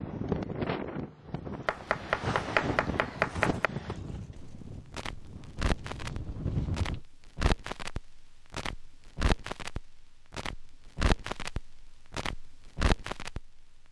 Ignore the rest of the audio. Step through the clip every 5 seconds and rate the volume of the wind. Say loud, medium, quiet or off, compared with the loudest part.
loud, loud, off.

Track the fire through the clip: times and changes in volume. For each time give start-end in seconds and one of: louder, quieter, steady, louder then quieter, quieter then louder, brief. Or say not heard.
4.3-13.8 steady.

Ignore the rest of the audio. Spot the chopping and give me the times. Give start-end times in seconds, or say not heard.
1.6-3.7.